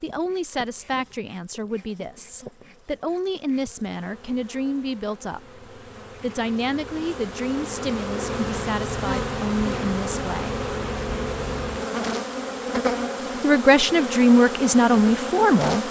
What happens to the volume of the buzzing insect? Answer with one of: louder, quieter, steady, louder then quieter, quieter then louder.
louder.